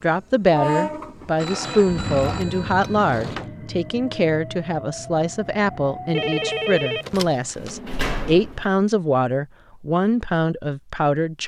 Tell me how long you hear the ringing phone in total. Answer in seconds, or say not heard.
3 s.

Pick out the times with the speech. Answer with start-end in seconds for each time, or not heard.
0.0-11.4.